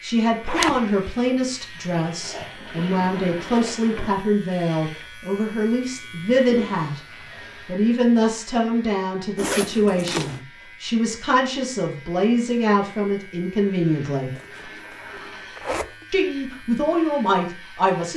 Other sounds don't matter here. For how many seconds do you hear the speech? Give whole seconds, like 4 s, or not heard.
16 s.